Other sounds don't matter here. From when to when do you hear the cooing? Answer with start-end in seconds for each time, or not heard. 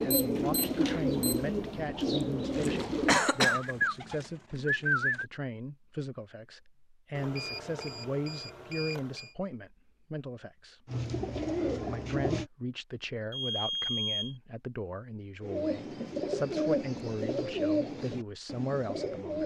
0.0-5.2, 10.8-12.4, 15.4-19.4.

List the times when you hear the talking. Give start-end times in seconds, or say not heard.
0.0-10.8, 11.8-19.4.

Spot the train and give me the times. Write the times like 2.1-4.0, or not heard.
not heard.